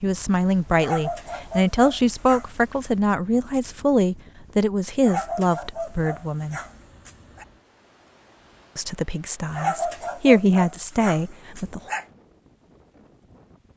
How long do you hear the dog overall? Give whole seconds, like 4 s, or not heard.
7 s.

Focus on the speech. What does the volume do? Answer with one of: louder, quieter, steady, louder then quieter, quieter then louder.
quieter then louder.